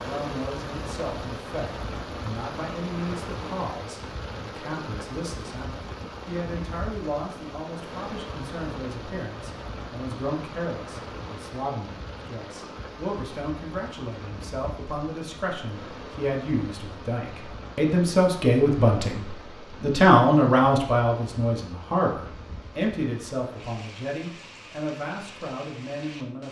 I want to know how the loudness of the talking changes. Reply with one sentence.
The loudness of the talking goes up, then down.